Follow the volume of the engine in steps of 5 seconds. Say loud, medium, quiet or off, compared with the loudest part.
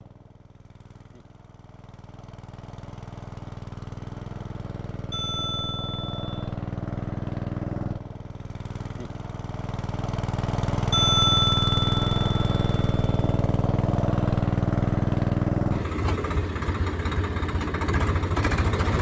quiet, medium, loud, loud.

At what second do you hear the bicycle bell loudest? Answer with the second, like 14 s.
11 s.